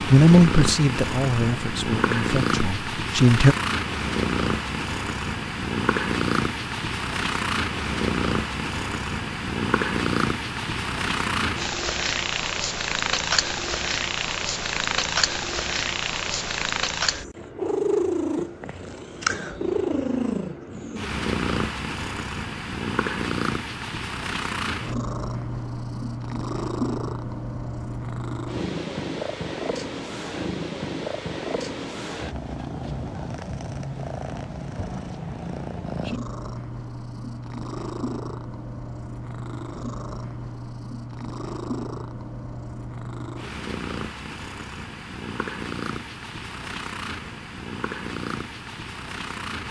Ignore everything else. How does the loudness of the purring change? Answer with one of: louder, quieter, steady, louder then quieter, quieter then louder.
quieter.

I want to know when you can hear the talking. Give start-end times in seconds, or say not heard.
0.0-3.5.